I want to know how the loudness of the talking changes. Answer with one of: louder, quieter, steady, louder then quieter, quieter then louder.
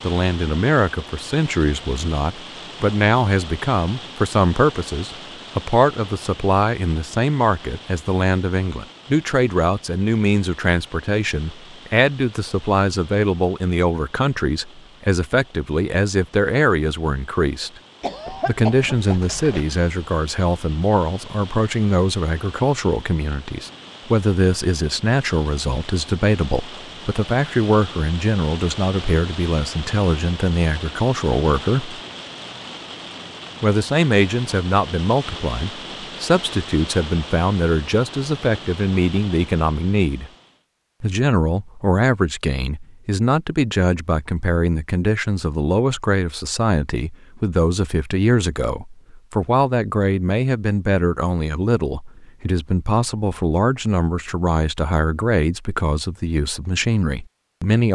steady.